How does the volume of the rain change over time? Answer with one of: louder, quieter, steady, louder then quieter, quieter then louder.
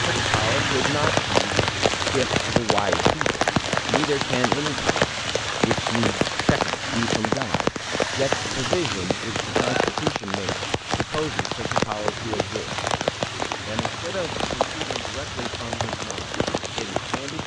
quieter.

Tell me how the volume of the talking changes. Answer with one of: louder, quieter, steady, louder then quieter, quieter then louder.
quieter.